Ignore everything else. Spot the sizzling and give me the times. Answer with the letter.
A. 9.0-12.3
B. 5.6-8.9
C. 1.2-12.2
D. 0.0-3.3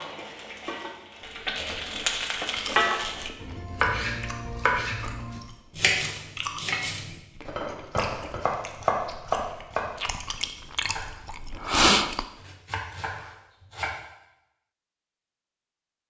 D.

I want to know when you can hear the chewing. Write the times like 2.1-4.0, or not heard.
1.2-12.2.